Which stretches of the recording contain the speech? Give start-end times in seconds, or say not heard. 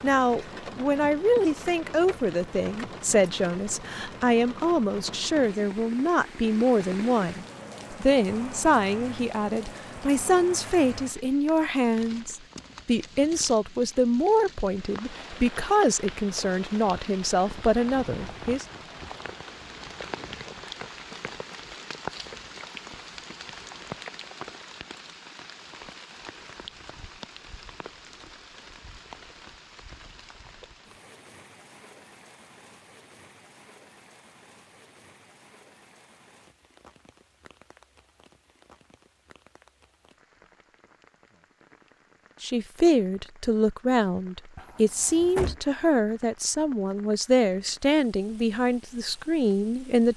0.0-18.6, 42.4-50.1.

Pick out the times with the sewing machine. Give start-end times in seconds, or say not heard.
not heard.